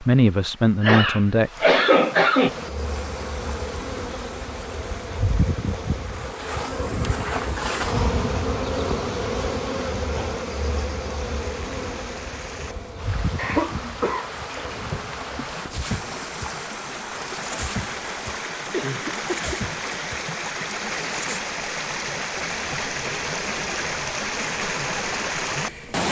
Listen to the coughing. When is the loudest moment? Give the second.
2 s.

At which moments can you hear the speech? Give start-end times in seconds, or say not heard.
0.0-1.5.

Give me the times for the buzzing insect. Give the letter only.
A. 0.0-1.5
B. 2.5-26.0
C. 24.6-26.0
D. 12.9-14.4
B.